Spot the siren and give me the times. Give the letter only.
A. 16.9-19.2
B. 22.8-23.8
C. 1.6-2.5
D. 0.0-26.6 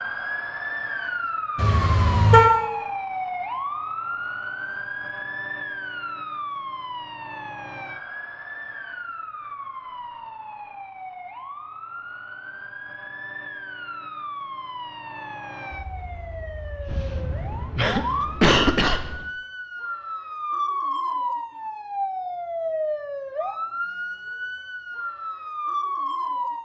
D.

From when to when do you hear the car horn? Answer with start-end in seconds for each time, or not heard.
1.6-2.5.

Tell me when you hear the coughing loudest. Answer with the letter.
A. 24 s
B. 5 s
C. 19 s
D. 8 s
C.